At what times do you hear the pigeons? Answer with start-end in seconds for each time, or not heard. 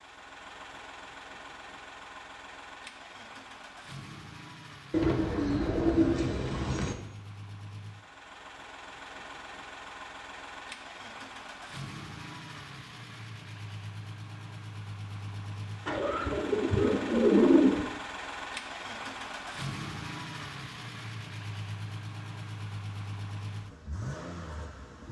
4.9-7.0, 15.8-17.9.